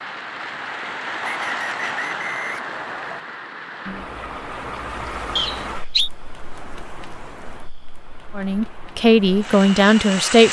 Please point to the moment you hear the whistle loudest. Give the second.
6 s.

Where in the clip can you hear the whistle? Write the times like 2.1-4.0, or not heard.
1.2-3.2, 5.3-6.1.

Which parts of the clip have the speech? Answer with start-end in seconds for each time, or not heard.
8.3-10.4.